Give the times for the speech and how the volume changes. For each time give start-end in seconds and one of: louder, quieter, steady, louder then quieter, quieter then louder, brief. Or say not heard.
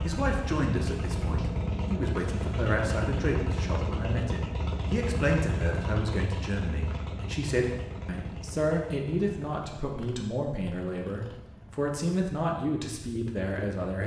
0.0-14.0 steady.